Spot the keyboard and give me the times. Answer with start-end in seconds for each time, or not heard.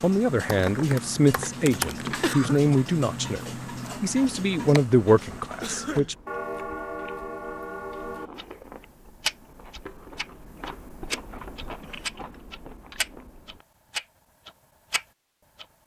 0.5-2.4.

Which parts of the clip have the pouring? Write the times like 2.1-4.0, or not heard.
not heard.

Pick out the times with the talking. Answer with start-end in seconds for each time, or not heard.
0.0-3.4, 4.0-6.2.